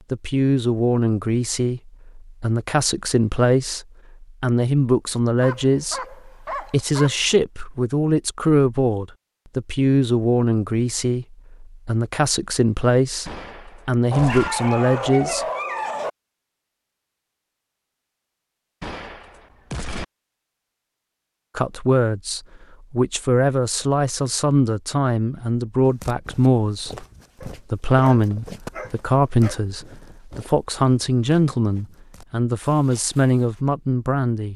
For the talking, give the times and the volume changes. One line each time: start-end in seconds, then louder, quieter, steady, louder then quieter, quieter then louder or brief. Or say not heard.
0.1-15.4 steady
21.6-34.5 steady.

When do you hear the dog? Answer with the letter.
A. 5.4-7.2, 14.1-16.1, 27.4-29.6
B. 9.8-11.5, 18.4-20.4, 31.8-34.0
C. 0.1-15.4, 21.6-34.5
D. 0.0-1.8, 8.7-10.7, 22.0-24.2
A.